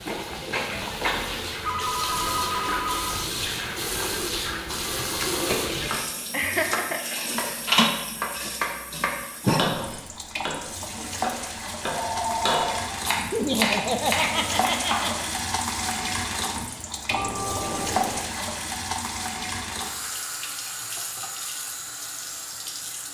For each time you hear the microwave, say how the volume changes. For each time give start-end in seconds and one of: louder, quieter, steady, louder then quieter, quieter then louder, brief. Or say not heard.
not heard.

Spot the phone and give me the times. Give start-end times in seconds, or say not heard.
1.6-3.2, 11.8-13.1, 17.1-18.3.